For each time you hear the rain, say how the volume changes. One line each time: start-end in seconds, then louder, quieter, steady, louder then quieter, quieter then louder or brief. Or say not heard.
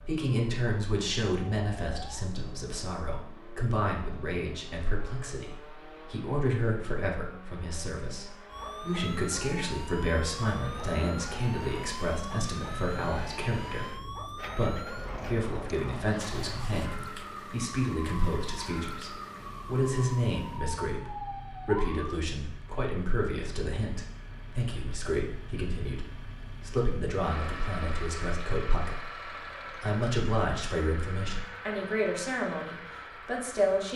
not heard.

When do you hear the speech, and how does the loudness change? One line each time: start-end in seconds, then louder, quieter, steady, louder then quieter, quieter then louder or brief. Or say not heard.
0.1-33.9 steady.